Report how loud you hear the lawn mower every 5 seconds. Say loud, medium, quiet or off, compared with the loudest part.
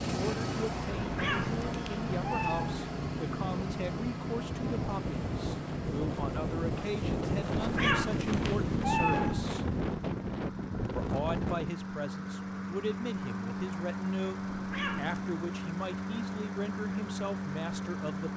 loud, medium, loud, loud.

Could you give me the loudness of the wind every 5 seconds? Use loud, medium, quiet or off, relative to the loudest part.
medium, loud, loud, off.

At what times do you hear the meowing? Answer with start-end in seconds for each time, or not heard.
1.0-2.8, 7.5-9.6, 14.4-15.3.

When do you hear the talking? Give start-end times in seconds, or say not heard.
0.1-9.7, 10.9-18.3.